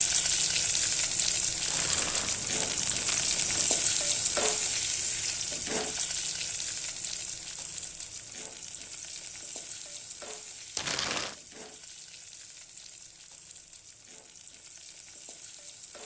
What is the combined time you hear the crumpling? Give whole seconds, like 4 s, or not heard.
3 s.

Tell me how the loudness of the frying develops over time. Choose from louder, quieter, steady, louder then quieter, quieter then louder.
quieter.